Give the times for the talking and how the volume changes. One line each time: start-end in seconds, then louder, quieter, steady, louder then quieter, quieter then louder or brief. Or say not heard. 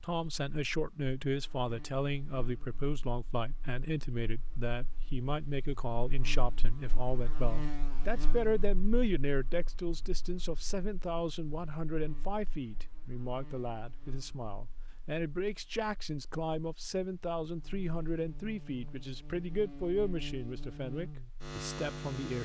0.0-22.4 steady.